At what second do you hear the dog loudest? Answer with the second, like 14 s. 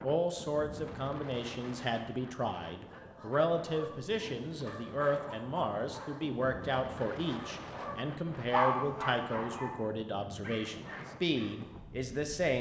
9 s.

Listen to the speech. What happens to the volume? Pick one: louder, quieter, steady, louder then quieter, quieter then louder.
steady.